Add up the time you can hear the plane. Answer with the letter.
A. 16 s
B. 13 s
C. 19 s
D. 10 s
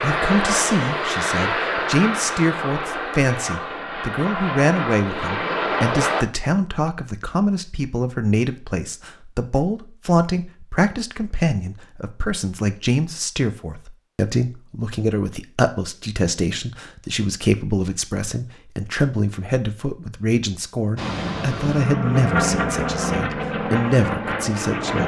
D.